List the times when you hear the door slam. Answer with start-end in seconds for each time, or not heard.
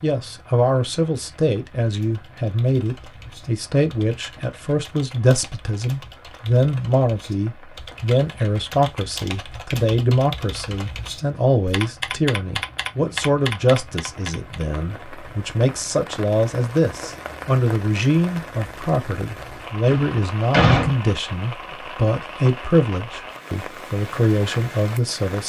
19.9-20.9.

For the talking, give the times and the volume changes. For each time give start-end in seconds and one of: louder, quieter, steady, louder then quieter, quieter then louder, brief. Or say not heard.
0.0-25.4 steady.